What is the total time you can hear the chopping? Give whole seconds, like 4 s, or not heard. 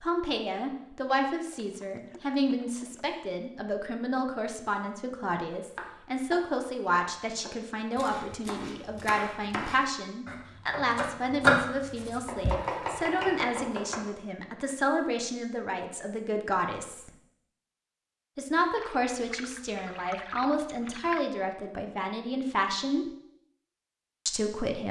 8 s.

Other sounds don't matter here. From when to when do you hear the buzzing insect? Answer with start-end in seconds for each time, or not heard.
not heard.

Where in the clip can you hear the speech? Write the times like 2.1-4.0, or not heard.
0.0-17.1, 18.4-23.1, 24.2-24.8.